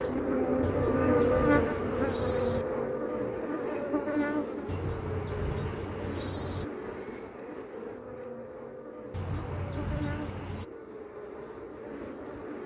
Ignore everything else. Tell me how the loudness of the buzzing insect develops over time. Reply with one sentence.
The volume of the buzzing insect goes down.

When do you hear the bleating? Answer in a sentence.
You can hear the bleating from 0.6 to 2.6 s, from 4.7 to 6.7 s and from 9.1 to 10.7 s.